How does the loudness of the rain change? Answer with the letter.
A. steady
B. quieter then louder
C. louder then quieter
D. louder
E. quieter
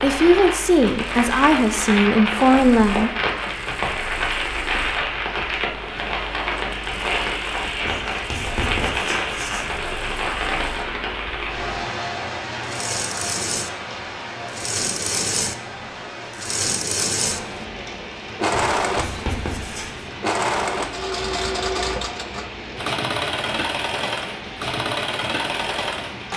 E.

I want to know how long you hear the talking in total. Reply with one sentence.
You can hear the talking for 3 seconds altogether.